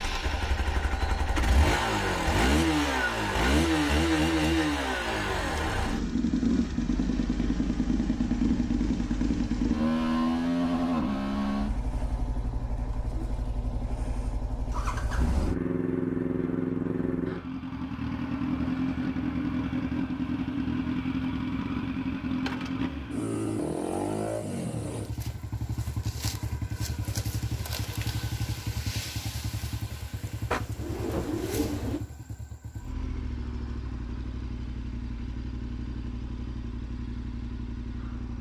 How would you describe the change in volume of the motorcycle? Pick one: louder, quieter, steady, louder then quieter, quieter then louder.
quieter.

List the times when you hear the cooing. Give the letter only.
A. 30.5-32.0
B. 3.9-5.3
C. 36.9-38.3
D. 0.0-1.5
A.